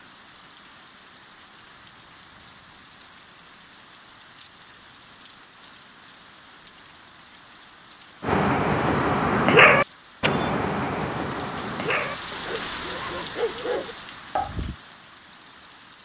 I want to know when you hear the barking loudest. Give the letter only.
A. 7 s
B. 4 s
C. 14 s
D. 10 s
D.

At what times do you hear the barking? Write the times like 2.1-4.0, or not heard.
8.2-14.8.